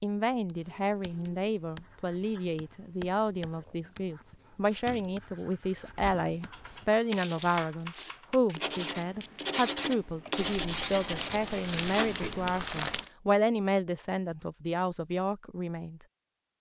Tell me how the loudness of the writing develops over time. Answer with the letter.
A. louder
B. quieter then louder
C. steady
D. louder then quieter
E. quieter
A.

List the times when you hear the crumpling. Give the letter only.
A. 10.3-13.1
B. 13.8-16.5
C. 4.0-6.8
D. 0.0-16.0
A.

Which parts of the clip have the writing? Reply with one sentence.
You can hear the writing from 0.5 to 12.2 s.